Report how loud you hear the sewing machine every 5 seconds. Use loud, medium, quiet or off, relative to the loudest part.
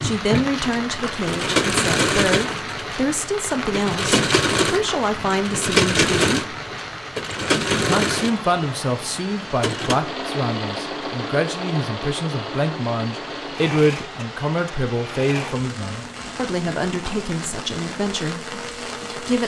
loud, loud, medium, quiet.